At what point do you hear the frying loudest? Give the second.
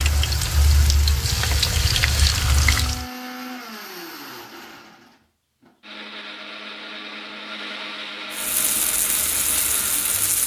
2 s.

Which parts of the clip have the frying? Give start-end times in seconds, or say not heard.
0.0-3.0, 8.3-10.4.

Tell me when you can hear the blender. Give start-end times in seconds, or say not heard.
0.0-10.4.